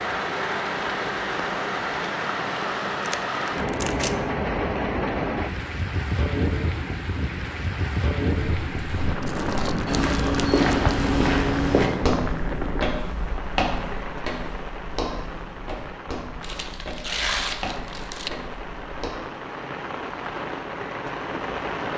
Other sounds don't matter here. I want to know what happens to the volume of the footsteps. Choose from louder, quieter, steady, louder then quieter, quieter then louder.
quieter.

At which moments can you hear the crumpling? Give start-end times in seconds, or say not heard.
3.0-4.2, 9.2-10.9, 16.4-18.3.